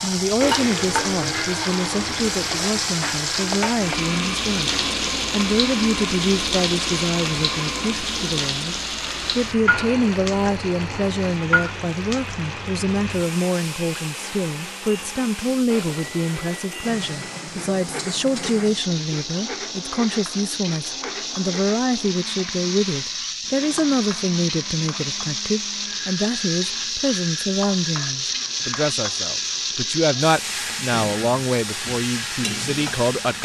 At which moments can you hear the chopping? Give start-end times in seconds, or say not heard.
not heard.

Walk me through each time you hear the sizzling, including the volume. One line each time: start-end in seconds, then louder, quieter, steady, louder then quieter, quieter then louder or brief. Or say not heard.
0.0-33.4 quieter then louder.